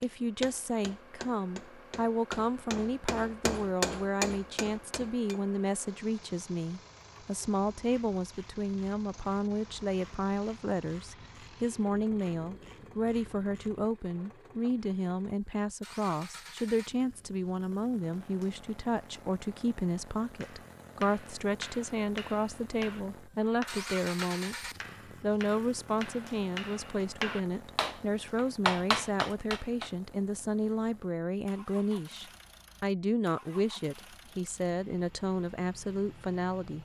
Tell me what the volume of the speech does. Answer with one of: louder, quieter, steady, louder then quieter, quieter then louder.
steady.